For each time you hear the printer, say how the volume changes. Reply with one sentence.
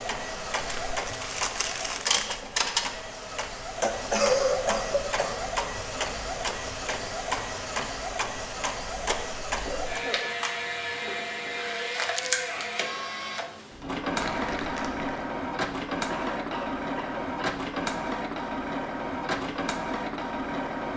You can hear the printer from 0.0 to 20.9 s, at a steady volume.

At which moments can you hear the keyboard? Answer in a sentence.
The keyboard can't be heard in this clip.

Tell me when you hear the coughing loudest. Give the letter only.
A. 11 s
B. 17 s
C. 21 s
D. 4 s
D.